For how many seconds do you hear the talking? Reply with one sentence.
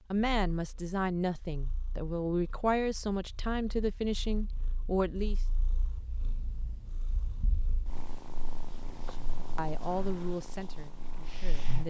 The talking can be heard for 8 seconds in total.